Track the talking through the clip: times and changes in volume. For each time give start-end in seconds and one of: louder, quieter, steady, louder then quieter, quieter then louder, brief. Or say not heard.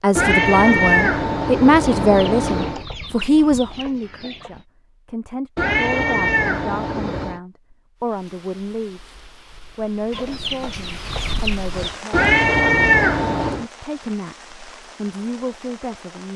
0.0-12.2 quieter
13.6-16.3 brief.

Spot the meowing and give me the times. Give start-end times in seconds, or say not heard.
0.1-2.9, 5.5-7.4, 12.1-13.7.